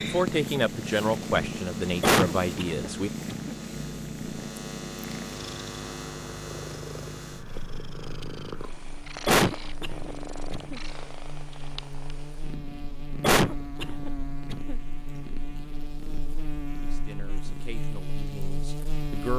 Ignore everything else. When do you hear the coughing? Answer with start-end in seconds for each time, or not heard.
2.0-3.5, 9.2-10.8, 13.2-14.8.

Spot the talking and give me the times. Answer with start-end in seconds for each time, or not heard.
0.0-3.1, 16.8-19.3.